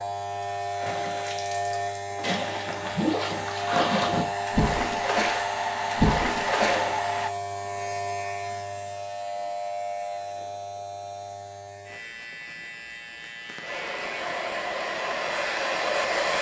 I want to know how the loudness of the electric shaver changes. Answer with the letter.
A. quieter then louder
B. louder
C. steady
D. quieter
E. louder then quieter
D.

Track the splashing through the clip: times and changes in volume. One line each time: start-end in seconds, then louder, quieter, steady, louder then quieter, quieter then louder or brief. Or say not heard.
0.7-6.9 louder.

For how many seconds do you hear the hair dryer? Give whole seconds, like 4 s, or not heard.
8 s.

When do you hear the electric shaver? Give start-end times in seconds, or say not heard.
0.0-16.3.